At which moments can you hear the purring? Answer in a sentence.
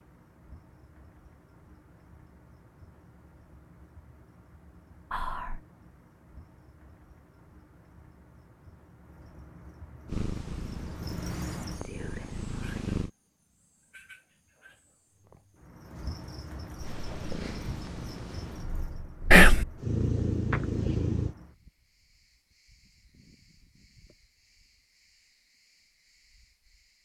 The purring can be heard from 10.1 to 13.1 s and from 16.8 to 21.4 s.